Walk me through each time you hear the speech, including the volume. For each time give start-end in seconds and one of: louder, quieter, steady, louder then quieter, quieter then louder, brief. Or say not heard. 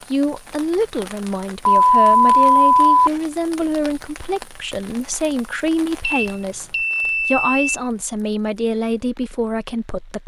0.1-10.2 steady.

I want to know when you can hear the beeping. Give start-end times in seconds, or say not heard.
1.6-3.2, 6.2-7.8.